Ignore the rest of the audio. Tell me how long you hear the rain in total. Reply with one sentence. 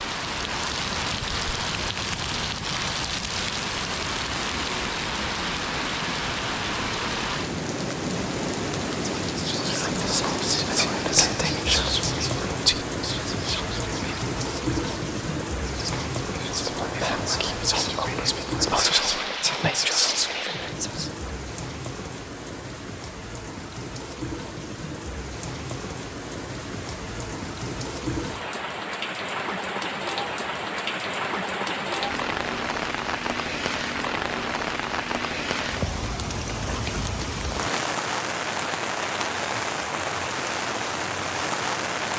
The rain can be heard for 42 seconds in total.